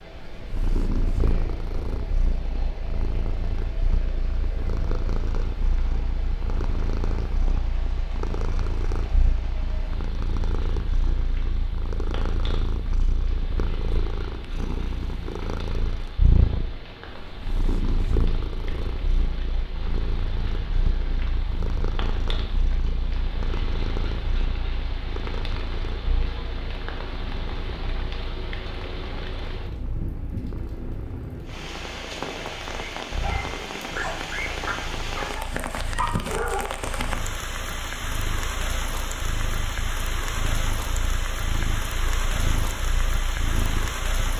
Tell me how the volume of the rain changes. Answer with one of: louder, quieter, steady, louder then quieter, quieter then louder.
louder.